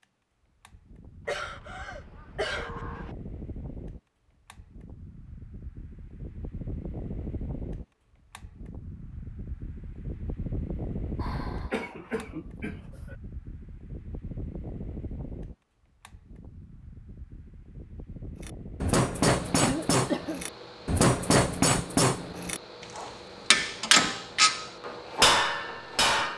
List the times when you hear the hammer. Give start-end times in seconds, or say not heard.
18.4-26.3.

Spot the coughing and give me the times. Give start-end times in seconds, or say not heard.
1.2-3.1, 11.2-13.2, 19.6-20.4.